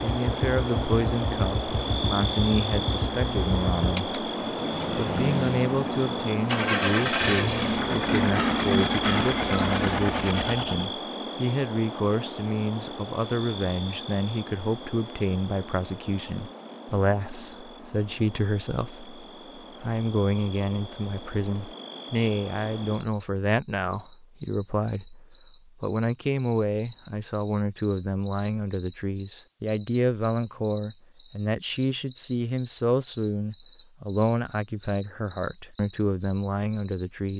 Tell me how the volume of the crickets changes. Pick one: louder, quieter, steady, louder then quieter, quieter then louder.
quieter then louder.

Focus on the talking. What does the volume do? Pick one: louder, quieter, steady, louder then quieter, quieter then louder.
steady.